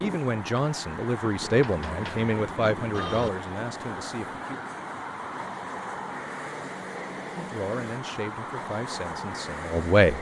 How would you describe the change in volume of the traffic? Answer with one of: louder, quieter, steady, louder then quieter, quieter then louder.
steady.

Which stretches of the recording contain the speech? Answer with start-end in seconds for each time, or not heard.
0.0-4.6, 7.2-10.1.